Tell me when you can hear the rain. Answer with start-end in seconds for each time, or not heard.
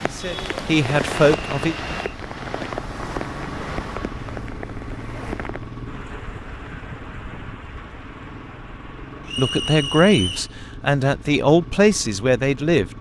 0.0-10.4.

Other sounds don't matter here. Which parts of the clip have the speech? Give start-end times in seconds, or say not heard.
0.0-1.8, 9.3-12.9.